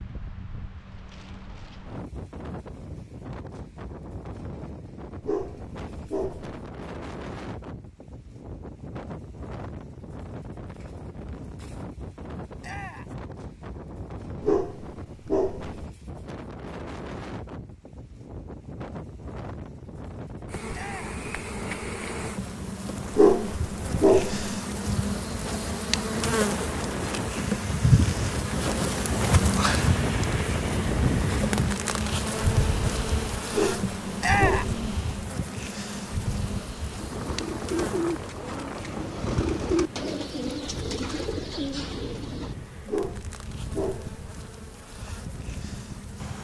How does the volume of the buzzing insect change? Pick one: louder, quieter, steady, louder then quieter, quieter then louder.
louder then quieter.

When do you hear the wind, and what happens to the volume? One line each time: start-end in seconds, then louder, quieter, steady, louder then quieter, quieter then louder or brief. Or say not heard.
0.0-46.3 louder then quieter.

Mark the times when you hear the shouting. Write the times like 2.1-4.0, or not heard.
12.6-13.2, 20.7-21.2, 34.2-34.8.